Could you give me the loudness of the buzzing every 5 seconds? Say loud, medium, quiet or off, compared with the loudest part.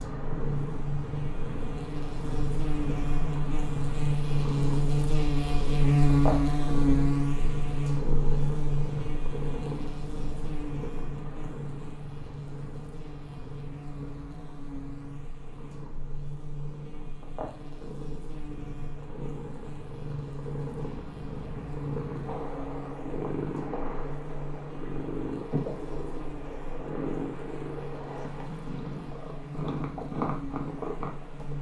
medium, loud, quiet, quiet, quiet, quiet, quiet.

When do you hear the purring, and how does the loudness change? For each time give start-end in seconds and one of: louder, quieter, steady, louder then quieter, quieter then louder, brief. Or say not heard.
0.0-31.5 quieter then louder.